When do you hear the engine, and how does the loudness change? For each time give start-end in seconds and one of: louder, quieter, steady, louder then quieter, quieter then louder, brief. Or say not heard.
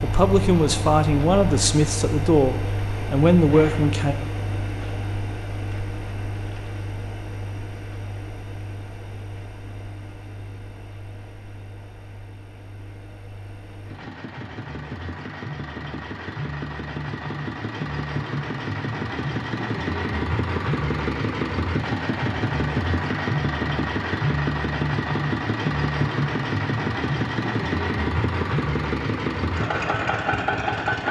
0.0-31.0 quieter then louder.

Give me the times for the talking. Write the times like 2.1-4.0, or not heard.
0.0-4.2.